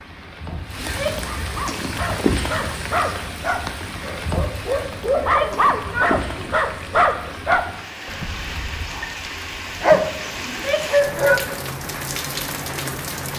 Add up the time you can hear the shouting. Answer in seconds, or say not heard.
3 s.